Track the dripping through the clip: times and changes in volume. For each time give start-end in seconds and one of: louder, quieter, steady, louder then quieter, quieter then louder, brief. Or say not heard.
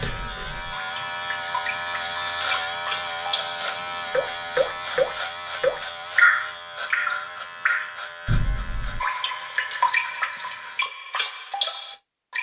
0.0-12.3 louder then quieter.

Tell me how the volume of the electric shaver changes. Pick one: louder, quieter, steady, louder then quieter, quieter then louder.
quieter.